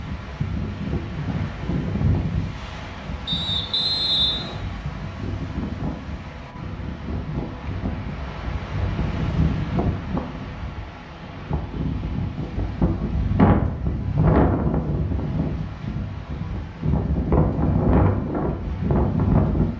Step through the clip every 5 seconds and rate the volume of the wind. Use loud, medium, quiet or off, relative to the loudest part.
medium, medium, loud, loud.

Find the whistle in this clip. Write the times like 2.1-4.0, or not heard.
3.2-4.7.